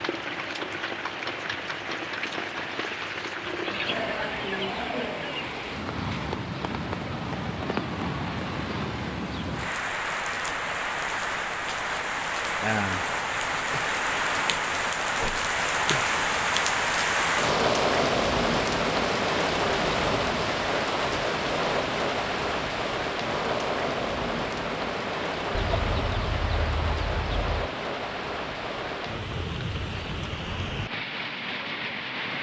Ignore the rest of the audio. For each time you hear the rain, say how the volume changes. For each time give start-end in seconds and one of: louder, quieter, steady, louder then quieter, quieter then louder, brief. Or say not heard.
0.0-32.3 louder then quieter.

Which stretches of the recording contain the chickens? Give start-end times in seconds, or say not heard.
3.5-5.5, 25.6-27.7.